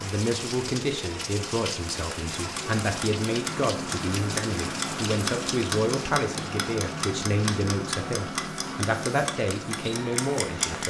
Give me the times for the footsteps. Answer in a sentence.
You can't hear the footsteps here.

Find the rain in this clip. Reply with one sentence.
You can hear the rain from 0.0 to 10.8 s.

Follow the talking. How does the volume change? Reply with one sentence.
The loudness of the talking stays about the same.